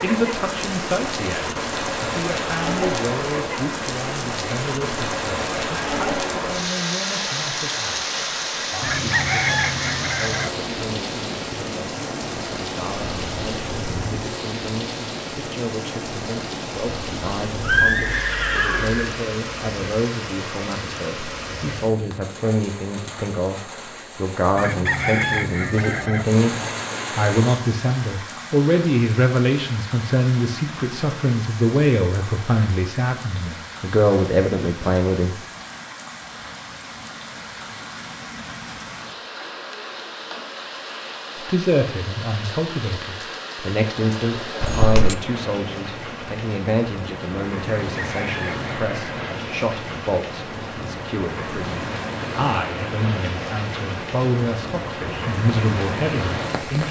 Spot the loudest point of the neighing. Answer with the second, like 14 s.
18 s.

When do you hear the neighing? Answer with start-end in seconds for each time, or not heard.
17.6-19.1, 44.6-45.1.